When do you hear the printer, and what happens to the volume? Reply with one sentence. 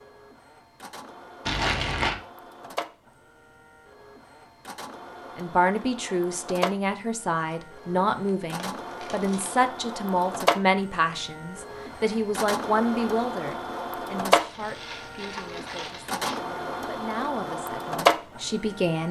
The printer can be heard from 0.0 to 19.0 s, getting louder.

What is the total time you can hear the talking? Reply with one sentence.
The talking can be heard for 14 seconds in total.